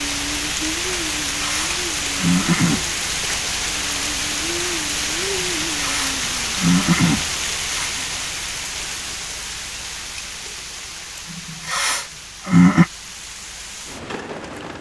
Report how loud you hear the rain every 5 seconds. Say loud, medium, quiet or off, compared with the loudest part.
loud, loud, medium.